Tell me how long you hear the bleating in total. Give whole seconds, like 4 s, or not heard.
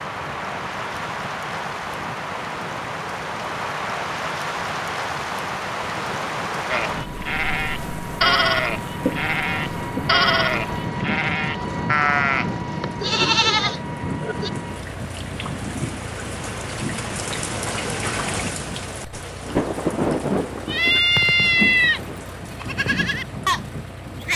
11 s.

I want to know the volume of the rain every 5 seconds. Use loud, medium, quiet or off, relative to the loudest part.
loud, loud, medium, loud, loud.